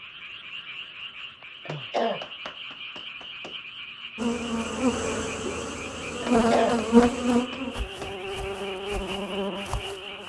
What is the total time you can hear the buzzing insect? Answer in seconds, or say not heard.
6 s.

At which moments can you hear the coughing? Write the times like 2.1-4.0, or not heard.
1.6-3.5, 6.2-8.1.